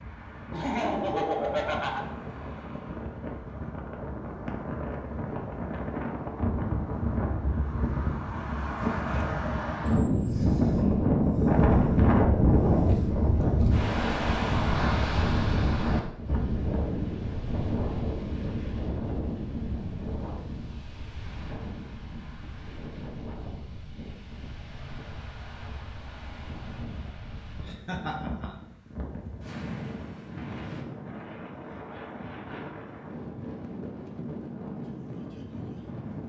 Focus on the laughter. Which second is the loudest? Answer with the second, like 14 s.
1 s.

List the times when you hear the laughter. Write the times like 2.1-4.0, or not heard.
0.5-2.0, 27.6-28.6.